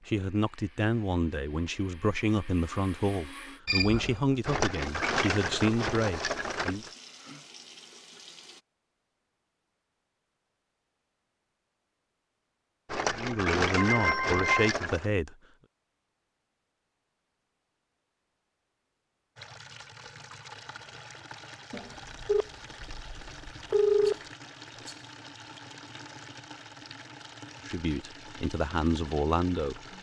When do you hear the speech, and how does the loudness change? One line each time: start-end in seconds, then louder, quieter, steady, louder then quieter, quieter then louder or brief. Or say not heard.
0.1-6.8 steady
13.2-15.3 brief
27.6-29.8 brief.